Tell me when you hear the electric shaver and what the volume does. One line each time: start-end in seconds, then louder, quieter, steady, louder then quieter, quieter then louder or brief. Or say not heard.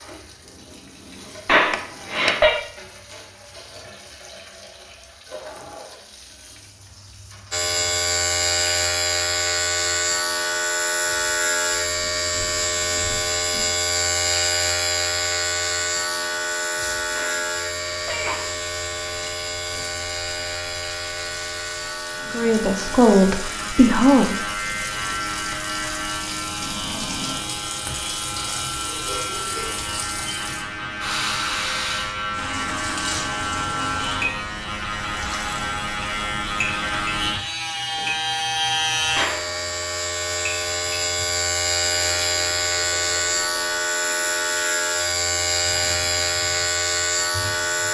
7.5-47.8 quieter then louder.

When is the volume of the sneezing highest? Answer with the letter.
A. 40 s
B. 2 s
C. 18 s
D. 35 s
B.